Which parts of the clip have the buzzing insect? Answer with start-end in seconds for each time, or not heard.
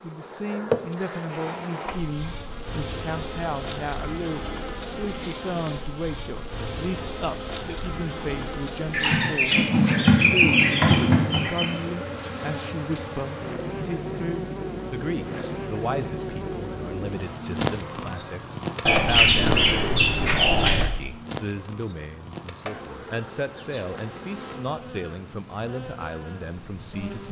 0.0-27.2.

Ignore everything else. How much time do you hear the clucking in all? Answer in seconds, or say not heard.
5 s.